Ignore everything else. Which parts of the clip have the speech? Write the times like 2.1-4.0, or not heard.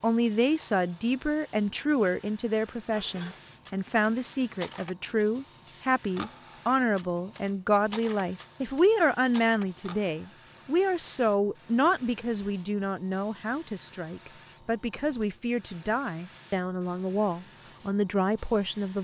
0.0-18.9.